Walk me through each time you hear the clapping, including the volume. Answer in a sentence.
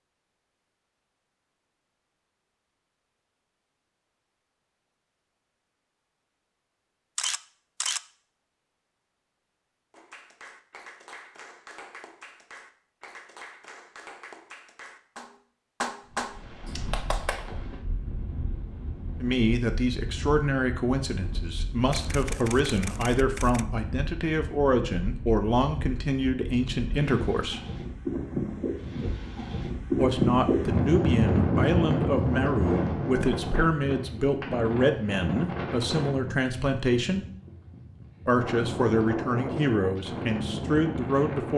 The clapping can be heard from 9.9 to 17.4 s, getting louder.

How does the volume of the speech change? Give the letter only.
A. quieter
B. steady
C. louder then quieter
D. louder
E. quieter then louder
B.